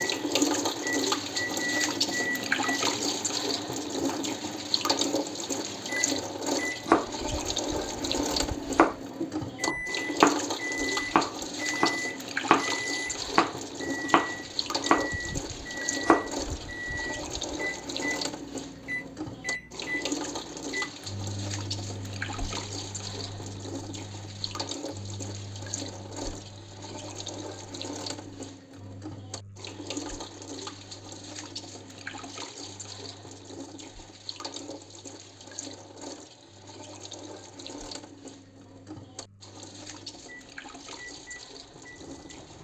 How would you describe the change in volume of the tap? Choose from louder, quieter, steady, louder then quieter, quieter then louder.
quieter.